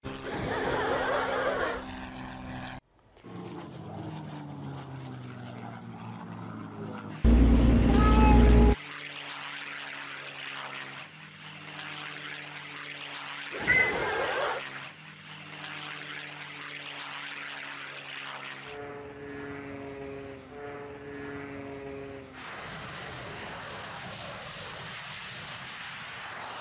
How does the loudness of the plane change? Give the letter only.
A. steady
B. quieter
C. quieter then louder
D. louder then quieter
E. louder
A.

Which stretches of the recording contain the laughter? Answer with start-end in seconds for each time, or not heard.
0.2-1.9, 13.5-14.6.